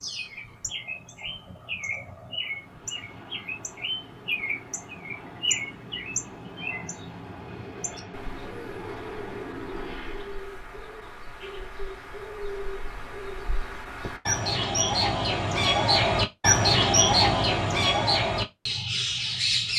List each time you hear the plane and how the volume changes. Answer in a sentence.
The plane can be heard from 2.4 to 10.5 s, getting louder.